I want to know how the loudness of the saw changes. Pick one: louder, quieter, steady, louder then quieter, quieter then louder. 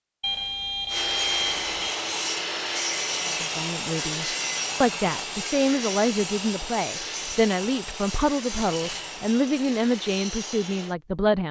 quieter.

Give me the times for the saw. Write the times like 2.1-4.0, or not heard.
0.8-10.9.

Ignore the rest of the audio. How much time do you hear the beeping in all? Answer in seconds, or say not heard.
2 s.